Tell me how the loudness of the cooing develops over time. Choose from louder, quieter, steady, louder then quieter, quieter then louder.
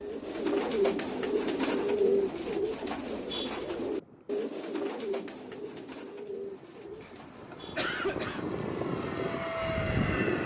quieter.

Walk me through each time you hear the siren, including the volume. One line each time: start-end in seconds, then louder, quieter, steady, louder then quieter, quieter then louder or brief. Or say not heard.
not heard.